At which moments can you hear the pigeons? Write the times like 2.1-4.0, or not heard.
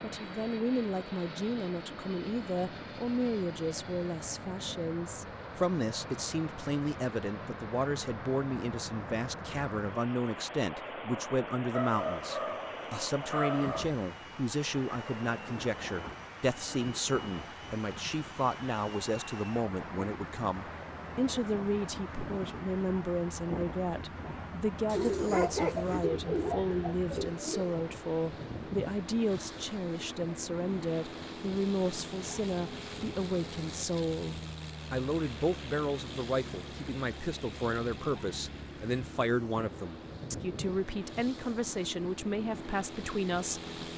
24.9-27.8.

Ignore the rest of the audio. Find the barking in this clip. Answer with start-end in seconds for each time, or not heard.
11.7-13.9, 24.9-26.1.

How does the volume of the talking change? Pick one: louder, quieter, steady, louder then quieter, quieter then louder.
steady.